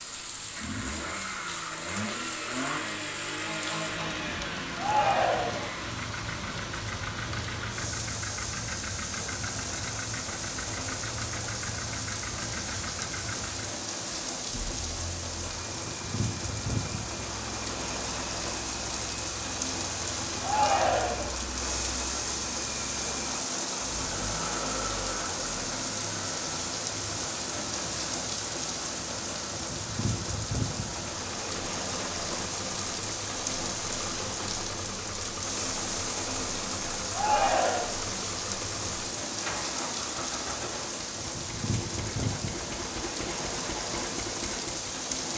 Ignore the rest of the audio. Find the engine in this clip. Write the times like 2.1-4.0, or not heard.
0.0-45.3.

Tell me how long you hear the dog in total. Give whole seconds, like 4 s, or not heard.
not heard.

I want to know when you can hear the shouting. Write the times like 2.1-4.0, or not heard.
4.8-5.7, 20.4-21.3, 37.1-37.9.